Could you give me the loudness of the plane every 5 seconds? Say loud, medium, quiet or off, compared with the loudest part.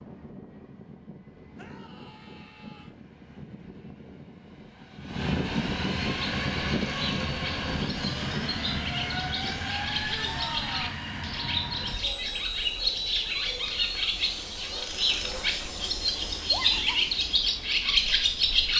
quiet, loud, medium, medium.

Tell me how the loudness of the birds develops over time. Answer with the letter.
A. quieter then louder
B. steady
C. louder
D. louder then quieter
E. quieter
C.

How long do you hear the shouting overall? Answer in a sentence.
The shouting can be heard for 3 seconds in total.